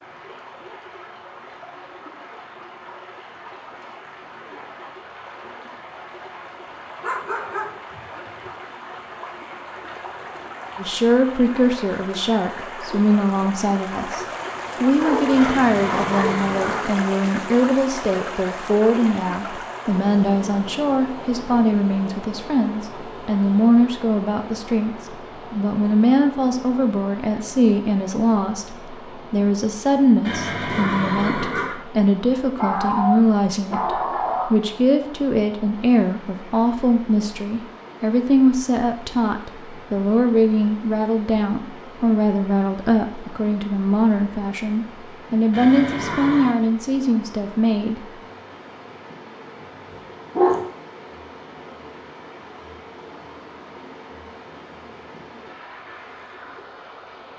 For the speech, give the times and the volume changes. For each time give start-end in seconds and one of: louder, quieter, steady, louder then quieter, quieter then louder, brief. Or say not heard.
10.8-48.0 steady.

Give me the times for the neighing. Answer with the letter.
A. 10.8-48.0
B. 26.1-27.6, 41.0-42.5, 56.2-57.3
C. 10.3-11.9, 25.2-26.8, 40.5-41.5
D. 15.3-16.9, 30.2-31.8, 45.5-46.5
D.